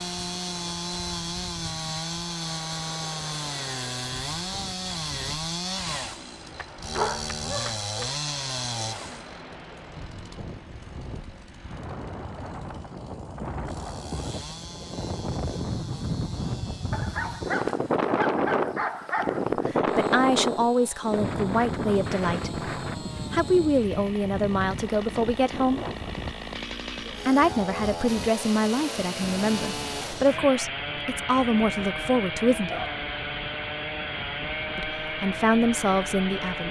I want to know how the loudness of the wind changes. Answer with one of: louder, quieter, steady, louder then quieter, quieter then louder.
louder then quieter.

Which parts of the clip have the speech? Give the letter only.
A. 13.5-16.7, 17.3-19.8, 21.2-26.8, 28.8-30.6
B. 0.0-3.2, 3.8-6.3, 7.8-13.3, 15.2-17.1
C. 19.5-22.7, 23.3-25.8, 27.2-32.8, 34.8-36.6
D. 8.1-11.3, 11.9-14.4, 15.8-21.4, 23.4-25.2
C.